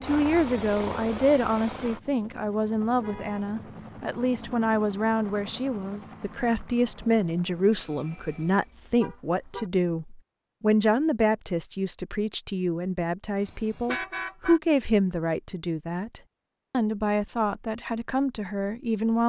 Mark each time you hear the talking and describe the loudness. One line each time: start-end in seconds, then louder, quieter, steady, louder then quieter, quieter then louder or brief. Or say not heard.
0.0-19.2 steady.